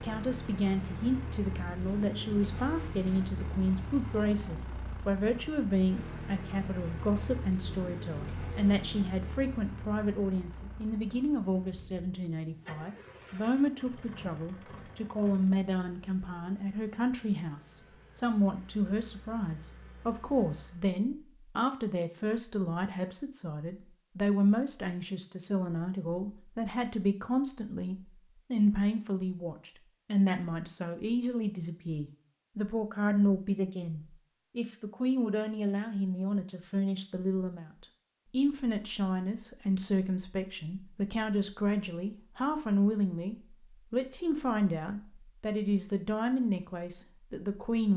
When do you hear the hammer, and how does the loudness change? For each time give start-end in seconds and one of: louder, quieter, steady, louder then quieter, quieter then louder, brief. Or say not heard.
not heard.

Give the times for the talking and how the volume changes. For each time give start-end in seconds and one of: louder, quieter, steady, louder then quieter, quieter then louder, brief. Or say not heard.
0.0-47.9 steady.